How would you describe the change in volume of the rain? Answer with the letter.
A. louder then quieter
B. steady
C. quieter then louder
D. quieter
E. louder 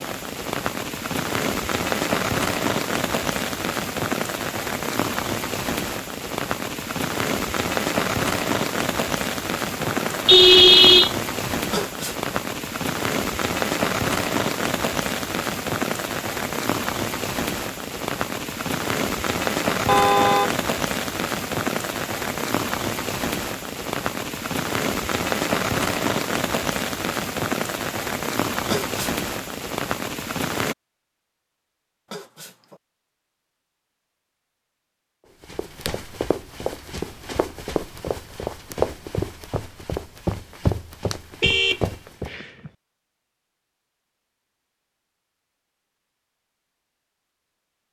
B.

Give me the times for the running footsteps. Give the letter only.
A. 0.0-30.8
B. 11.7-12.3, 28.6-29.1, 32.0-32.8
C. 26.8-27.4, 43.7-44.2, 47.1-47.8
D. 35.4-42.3
D.